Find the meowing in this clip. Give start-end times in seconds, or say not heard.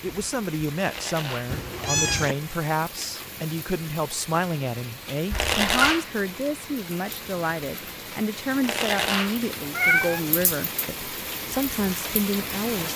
1.5-2.4, 5.3-6.0, 9.8-10.2.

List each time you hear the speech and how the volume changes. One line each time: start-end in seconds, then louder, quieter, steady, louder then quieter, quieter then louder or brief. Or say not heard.
0.0-12.9 steady.